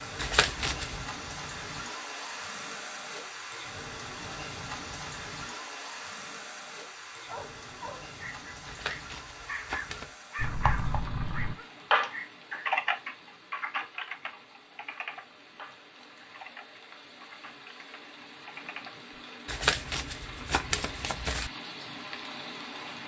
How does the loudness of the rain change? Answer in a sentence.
The loudness of the rain goes down, then up.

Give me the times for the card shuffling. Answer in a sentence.
You can hear the card shuffling from 0.1 to 1.1 s, from 8.7 to 10.1 s and from 19.4 to 21.5 s.